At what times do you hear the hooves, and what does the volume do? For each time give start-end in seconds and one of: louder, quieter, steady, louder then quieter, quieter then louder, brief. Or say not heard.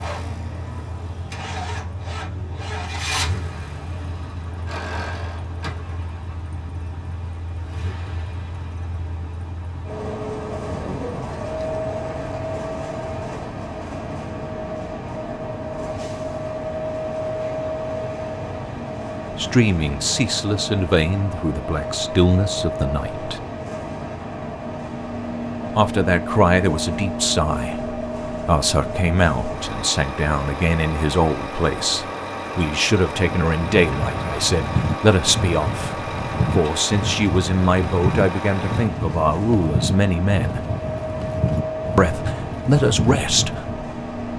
33.1-43.9 steady.